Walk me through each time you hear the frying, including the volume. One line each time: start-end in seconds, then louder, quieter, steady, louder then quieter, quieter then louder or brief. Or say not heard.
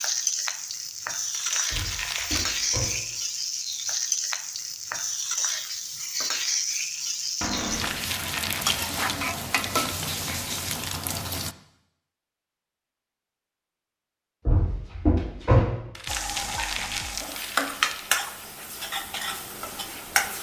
0.0-11.6 steady
16.1-20.3 louder then quieter.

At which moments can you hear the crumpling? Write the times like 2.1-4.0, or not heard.
1.3-3.0, 7.7-8.9, 15.9-18.1.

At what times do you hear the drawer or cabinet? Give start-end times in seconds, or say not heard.
1.7-3.0, 7.4-8.0, 14.4-15.7.